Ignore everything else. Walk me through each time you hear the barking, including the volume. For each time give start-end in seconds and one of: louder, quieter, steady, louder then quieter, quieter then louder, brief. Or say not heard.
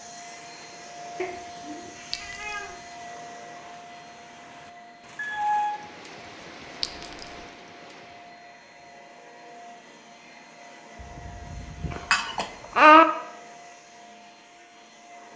not heard.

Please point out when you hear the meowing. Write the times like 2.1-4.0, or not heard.
1.1-2.8, 5.2-5.8, 10.9-12.0.